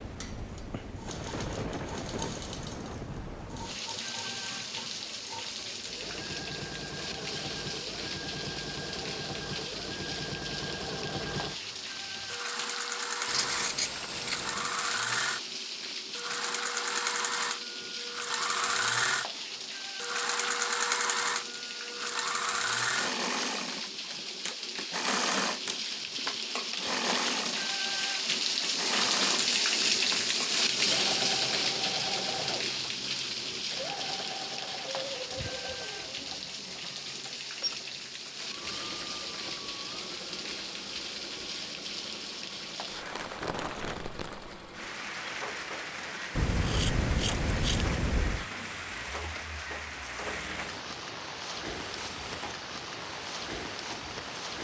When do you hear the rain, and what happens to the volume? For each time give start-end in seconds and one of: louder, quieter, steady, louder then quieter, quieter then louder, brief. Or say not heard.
0.0-54.5 louder then quieter.